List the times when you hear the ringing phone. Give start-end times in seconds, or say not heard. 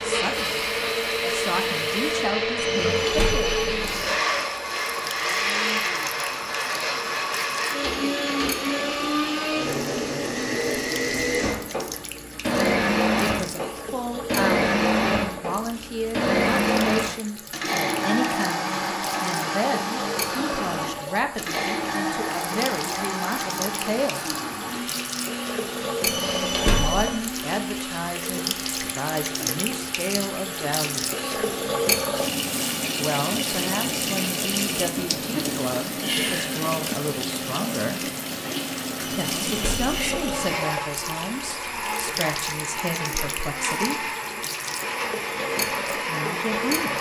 2.5-4.2, 26.1-27.1, 39.0-40.6.